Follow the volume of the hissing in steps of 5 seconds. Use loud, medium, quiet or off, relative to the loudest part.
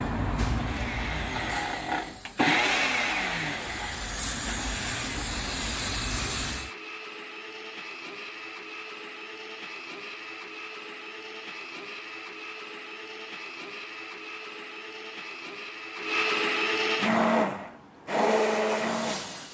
loud, loud, off, medium.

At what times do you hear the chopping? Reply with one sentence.
The chopping can't be heard in this clip.